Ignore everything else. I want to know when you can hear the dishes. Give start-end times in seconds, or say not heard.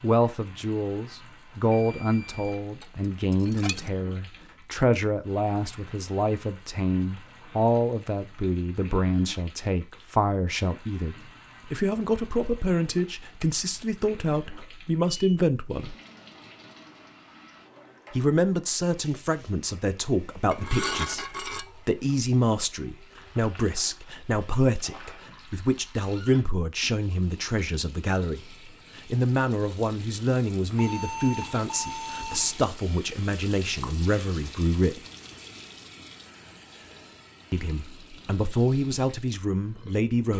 2.8-3.9, 20.5-21.6.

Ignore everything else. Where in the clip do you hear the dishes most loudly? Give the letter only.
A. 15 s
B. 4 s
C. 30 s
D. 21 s
D.